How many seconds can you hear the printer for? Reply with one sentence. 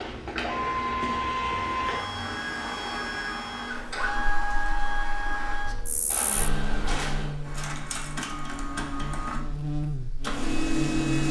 The printer can be heard for 11 seconds in total.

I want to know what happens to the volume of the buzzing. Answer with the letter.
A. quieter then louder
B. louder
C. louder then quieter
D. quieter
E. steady
B.